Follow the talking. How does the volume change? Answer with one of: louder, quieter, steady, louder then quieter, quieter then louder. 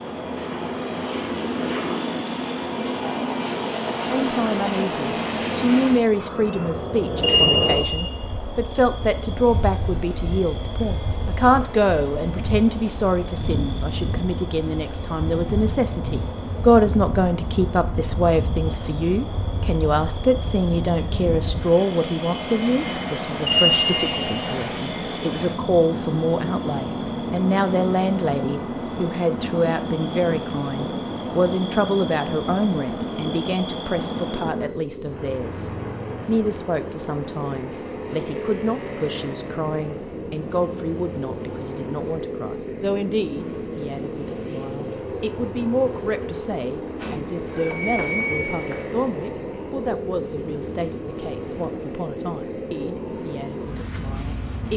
quieter.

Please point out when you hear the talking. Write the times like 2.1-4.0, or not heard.
4.0-54.7.